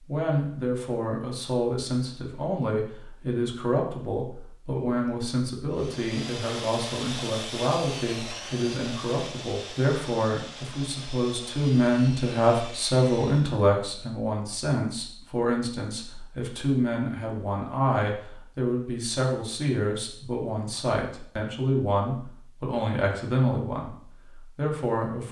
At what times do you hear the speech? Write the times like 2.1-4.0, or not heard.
0.1-25.2.